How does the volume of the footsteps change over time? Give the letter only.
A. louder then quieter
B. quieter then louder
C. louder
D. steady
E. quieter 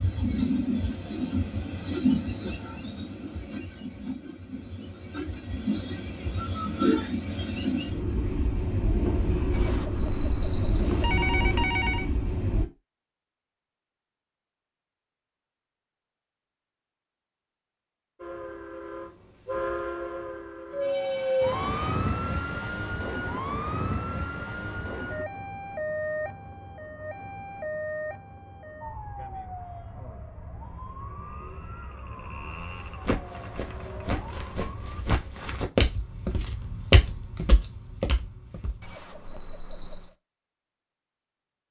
A.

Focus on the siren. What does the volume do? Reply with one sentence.
The loudness of the siren goes down.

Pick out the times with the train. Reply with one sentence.
You can hear the train from 0.0 to 12.7 s and from 18.1 to 21.9 s.